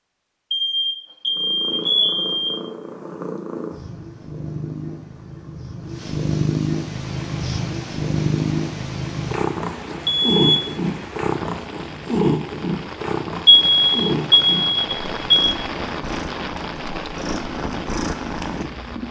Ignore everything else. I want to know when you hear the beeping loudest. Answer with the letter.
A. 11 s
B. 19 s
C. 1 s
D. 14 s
D.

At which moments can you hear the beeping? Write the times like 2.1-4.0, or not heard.
0.5-2.5, 10.1-10.7, 13.4-15.4.